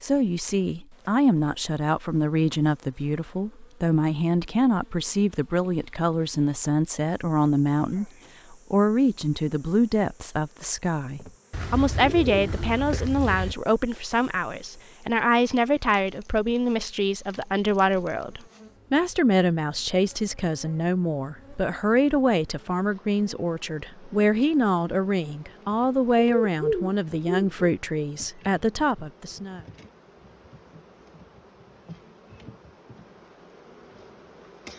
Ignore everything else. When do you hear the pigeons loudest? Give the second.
27 s.